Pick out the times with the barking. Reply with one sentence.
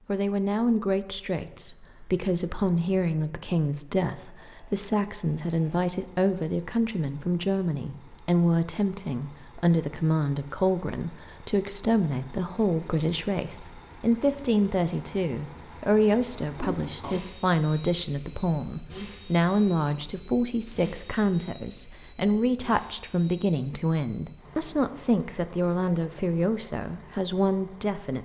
The barking can't be heard in this clip.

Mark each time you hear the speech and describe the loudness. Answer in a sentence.
The speech can be heard from 0.1 to 28.2 s, at a steady volume.